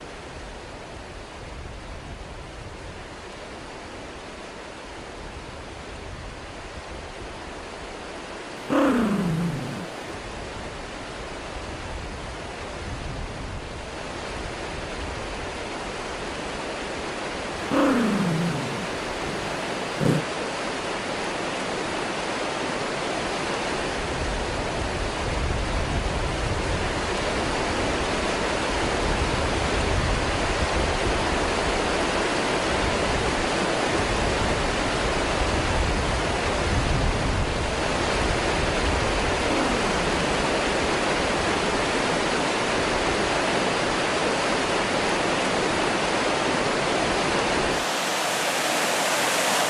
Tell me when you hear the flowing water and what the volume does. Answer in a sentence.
The flowing water can be heard from 0.0 to 49.6 s, getting louder.